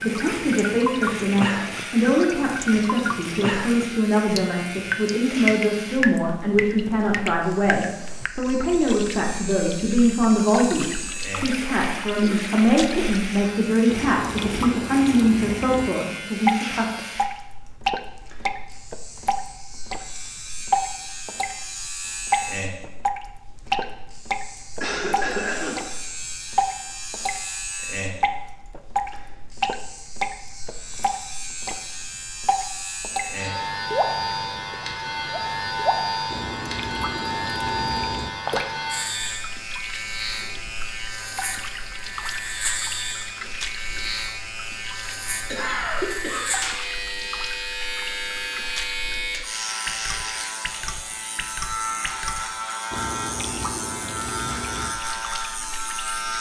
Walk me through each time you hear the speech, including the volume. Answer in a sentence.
You can hear the speech from 0.0 to 16.9 s, at a steady volume.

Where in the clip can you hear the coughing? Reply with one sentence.
You can hear the coughing from 12.2 to 13.2 s, from 24.8 to 26.0 s and from 45.5 to 46.5 s.